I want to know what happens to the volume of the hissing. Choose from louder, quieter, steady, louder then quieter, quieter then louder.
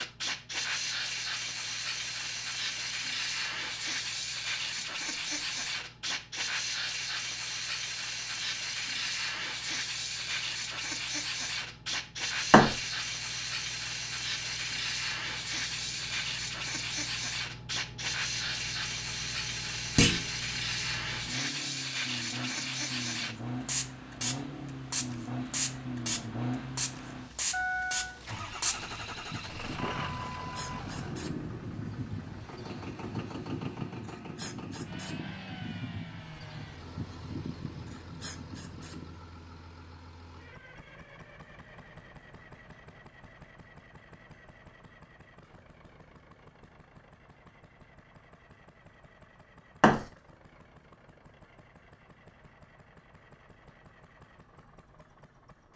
quieter.